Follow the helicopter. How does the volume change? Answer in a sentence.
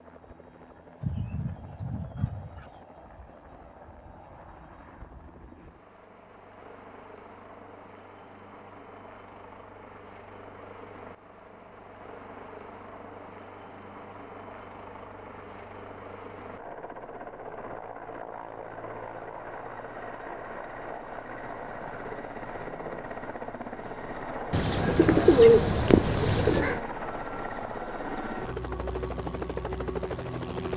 The volume of the helicopter goes up.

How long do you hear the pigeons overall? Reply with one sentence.
You can hear the pigeons for 4 seconds altogether.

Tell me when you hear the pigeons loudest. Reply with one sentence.
The loudest moment of the pigeons is at 25 seconds.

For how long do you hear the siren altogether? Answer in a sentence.
The siren can't be heard in this clip.